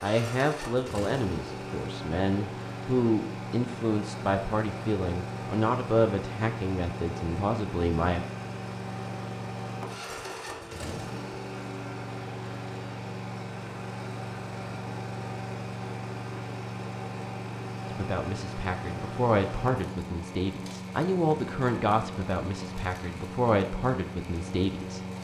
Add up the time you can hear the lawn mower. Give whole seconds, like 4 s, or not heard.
25 s.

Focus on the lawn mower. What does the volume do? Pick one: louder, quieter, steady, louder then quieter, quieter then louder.
steady.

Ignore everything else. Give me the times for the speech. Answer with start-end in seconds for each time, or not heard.
0.0-8.2, 17.9-25.0.